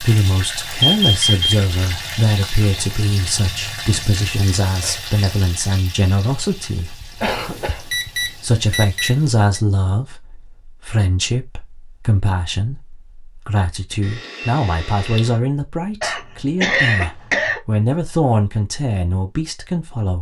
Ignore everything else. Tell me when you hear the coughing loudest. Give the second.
17 s.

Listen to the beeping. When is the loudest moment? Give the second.
1 s.